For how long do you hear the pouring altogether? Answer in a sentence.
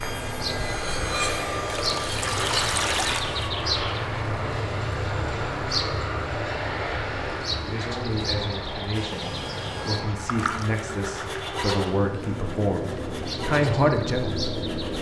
The pouring can be heard for 3 seconds in total.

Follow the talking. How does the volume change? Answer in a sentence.
The volume of the talking goes up.